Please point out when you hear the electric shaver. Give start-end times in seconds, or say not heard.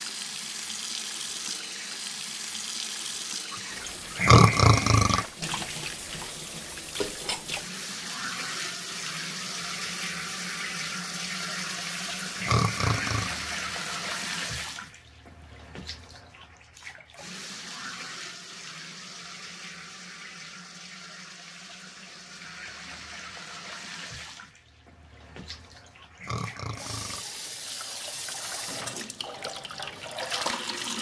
not heard.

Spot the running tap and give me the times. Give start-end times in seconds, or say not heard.
0.0-30.9.